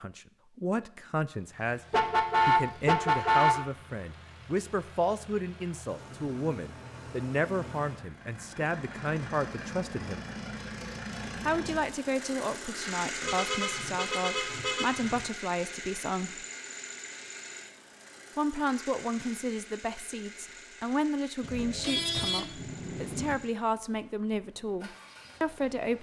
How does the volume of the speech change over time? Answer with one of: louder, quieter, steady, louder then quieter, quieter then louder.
steady.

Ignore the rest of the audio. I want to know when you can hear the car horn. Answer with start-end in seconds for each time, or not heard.
1.9-3.6, 13.2-15.2, 21.4-23.4.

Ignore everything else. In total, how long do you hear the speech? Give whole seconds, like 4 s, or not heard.
23 s.